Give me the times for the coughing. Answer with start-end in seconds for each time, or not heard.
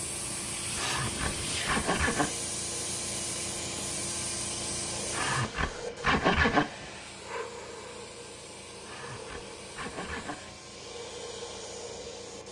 not heard.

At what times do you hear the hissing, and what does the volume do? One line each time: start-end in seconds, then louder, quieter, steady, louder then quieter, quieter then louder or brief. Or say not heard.
0.0-12.4 quieter.